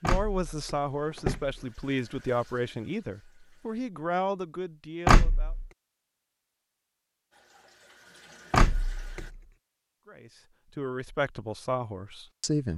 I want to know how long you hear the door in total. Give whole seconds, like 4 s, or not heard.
3 s.